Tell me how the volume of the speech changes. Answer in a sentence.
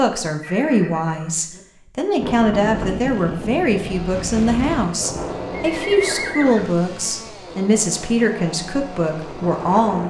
The loudness of the speech stays about the same.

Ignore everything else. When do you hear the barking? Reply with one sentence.
The barking can't be heard in this clip.